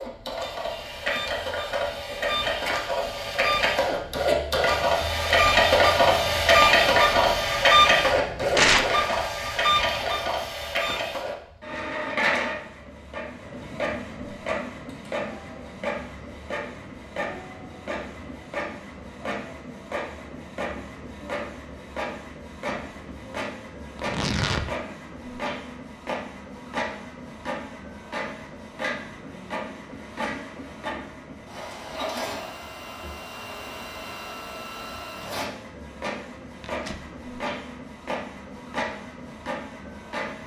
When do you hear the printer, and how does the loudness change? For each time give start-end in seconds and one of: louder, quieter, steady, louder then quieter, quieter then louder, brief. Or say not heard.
0.0-40.4 quieter.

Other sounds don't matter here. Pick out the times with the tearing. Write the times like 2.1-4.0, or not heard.
8.6-9.1, 23.9-24.6, 36.6-37.0.